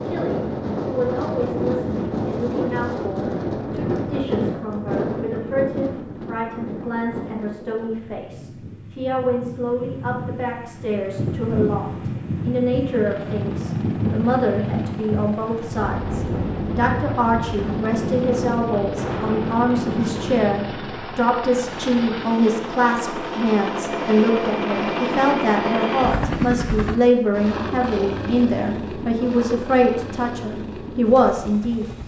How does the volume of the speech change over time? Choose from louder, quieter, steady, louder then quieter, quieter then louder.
louder.